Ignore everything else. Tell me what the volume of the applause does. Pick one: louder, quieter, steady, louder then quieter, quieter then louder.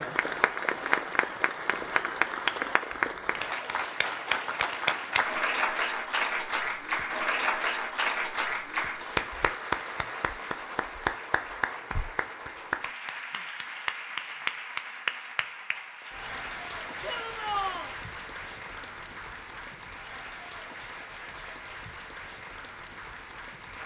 quieter.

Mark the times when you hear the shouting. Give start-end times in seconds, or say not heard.
17.0-17.9.